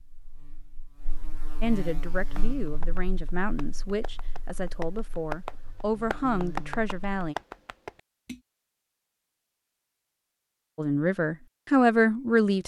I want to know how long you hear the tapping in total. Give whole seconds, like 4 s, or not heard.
6 s.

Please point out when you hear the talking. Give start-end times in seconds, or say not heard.
1.6-7.3, 10.8-12.6.